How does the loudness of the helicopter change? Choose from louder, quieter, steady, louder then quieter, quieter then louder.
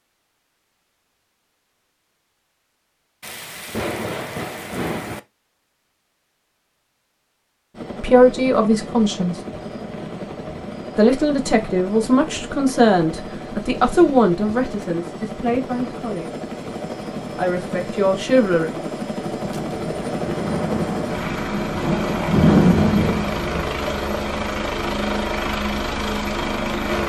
louder.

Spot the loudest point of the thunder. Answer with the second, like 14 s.
23 s.